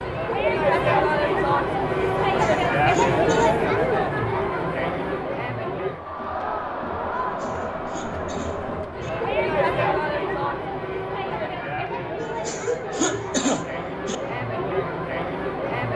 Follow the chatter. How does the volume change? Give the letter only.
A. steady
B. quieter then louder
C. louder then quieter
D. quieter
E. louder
D.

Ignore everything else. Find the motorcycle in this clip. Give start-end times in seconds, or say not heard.
not heard.